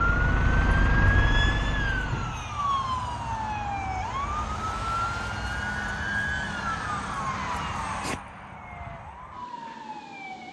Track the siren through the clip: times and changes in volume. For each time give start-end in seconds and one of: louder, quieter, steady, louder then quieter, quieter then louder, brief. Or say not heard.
0.0-10.4 quieter.